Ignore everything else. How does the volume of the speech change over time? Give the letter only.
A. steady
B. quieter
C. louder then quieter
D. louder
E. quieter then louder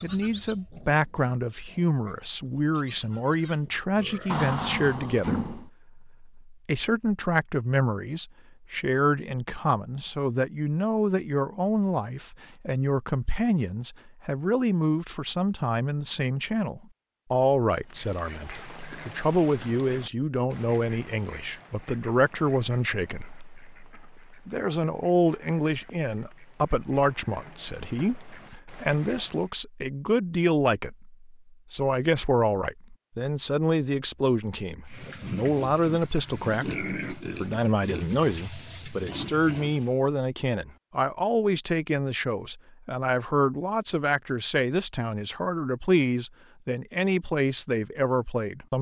A.